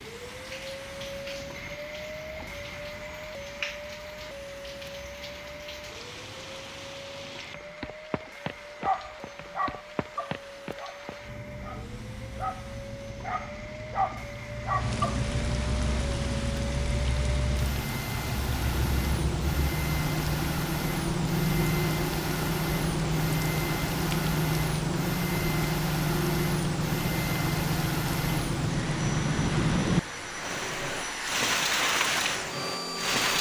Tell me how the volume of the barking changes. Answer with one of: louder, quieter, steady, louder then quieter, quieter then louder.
quieter then louder.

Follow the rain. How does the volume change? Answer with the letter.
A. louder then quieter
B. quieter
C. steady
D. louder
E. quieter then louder
D.